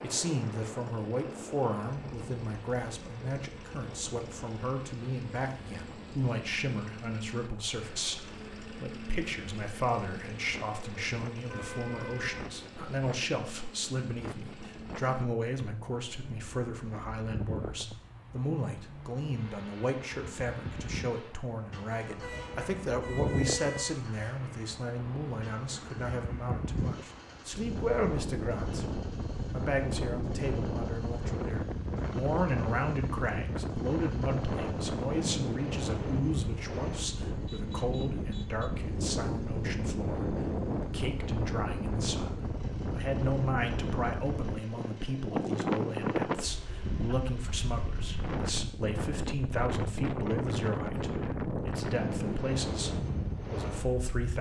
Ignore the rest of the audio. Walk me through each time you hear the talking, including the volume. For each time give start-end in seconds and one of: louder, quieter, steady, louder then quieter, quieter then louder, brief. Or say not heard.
0.0-54.3 steady.